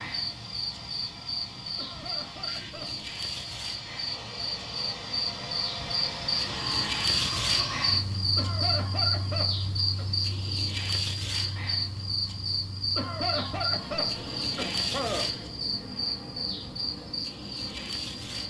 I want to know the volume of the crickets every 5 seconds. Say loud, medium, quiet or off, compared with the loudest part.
medium, loud, loud, medium.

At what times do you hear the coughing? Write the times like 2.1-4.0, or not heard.
1.8-3.0, 8.3-10.1, 12.9-15.3.